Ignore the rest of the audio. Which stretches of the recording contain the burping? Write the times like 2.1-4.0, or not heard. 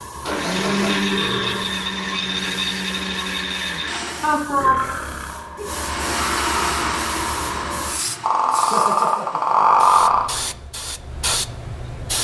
0.1-1.8, 4.5-5.5, 8.2-10.3.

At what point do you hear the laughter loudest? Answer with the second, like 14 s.
5 s.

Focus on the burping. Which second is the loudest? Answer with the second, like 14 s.
10 s.